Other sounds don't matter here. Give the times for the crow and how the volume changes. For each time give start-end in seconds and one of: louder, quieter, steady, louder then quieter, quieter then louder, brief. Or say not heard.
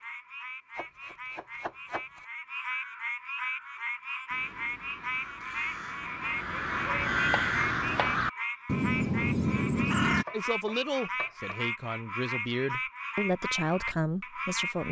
2.6-10.2 louder.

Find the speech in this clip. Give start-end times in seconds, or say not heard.
10.3-14.8.